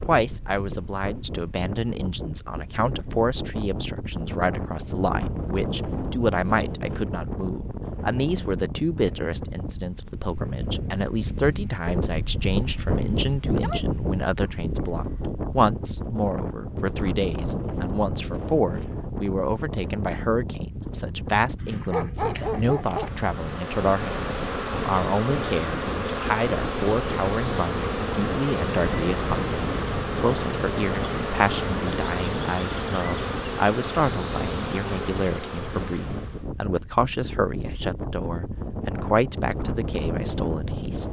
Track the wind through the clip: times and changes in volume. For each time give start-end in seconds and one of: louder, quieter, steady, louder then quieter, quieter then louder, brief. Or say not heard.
0.0-41.0 steady.